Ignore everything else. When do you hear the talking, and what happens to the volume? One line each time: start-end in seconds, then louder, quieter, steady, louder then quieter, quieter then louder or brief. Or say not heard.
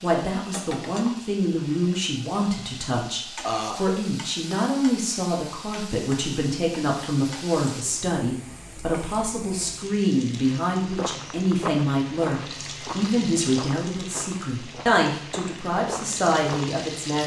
0.0-17.2 steady.